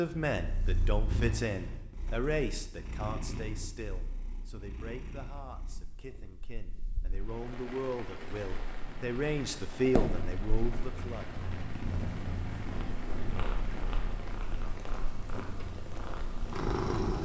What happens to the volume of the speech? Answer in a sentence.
The loudness of the speech goes down, then up.